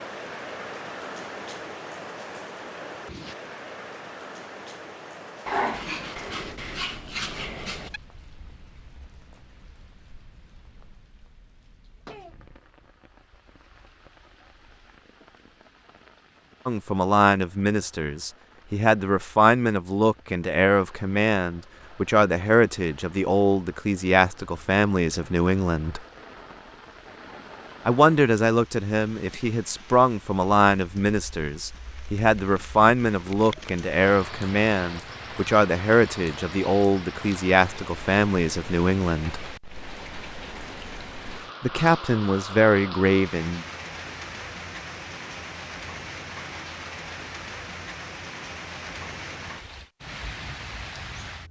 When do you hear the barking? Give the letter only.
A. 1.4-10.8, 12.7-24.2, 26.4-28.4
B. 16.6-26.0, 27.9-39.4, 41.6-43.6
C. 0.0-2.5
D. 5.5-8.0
D.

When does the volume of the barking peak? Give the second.
6 s.